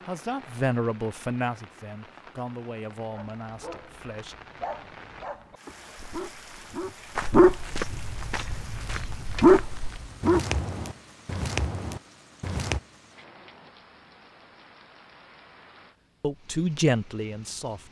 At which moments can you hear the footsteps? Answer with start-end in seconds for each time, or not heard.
6.0-12.8.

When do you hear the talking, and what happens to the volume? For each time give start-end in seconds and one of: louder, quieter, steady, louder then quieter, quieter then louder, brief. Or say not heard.
0.1-4.3 quieter
16.2-17.8 brief.